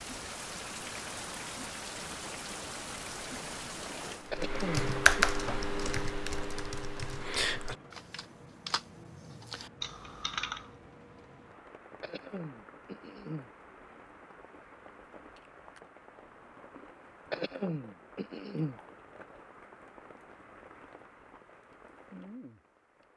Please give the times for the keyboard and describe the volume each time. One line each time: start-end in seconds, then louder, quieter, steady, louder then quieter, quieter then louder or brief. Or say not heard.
4.3-10.7 quieter.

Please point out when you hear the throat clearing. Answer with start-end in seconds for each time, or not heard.
4.3-5.2, 12.0-13.5, 17.3-18.8.